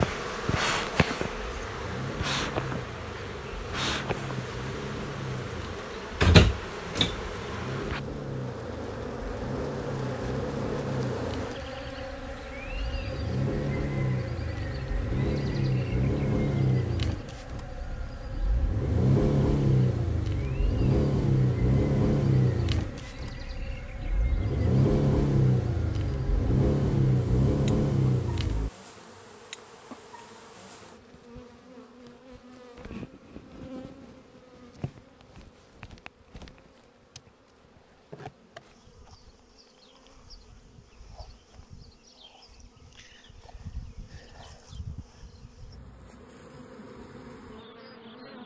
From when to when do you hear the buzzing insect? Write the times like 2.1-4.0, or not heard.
0.0-48.4.